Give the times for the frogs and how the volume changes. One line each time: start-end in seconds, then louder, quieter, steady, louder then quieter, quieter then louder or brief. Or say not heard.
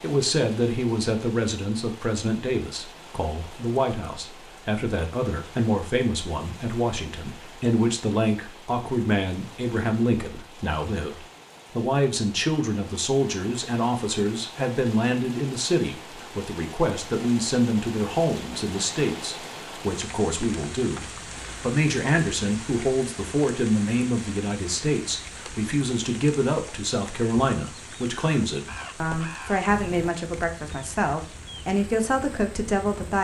not heard.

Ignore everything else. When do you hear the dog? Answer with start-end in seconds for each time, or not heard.
not heard.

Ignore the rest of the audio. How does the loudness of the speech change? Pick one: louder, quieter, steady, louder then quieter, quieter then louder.
steady.